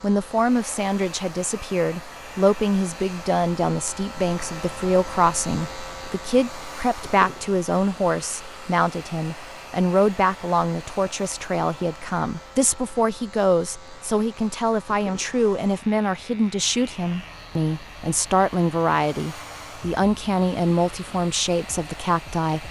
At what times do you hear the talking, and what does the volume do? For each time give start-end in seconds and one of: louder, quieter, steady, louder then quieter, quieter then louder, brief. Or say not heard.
0.0-22.6 steady.